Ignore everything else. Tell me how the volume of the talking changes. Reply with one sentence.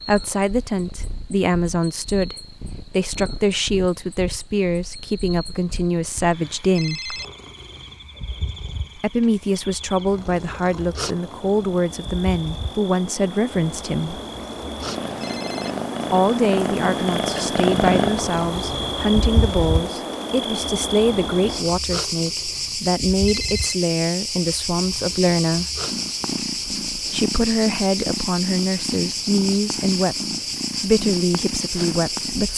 The loudness of the talking stays about the same.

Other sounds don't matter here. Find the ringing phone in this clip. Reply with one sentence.
You can hear the ringing phone from 6.8 to 7.2 s, from 15.2 to 15.8 s and from 23.2 to 23.8 s.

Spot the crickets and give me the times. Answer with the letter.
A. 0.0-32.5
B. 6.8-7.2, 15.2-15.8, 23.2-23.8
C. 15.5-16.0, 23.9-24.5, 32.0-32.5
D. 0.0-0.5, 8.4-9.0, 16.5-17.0
A.